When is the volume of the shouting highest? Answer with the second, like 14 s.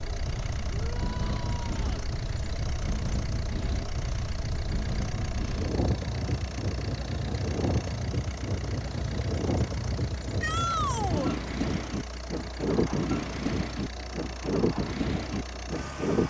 11 s.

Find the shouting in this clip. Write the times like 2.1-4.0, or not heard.
0.7-1.9, 10.4-11.3.